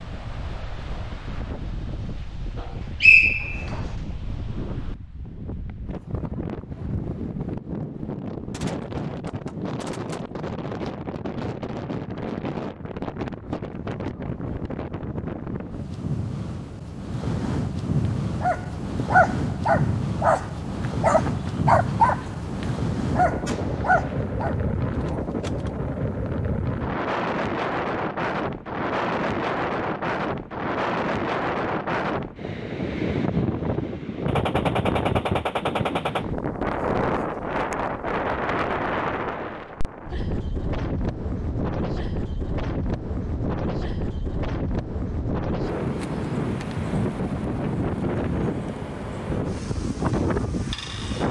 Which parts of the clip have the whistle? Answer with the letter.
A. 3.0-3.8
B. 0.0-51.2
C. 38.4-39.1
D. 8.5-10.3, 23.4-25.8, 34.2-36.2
A.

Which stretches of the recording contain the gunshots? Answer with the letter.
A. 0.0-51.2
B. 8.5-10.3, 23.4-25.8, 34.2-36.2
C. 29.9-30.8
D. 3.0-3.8
B.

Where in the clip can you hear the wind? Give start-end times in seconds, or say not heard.
0.0-51.2.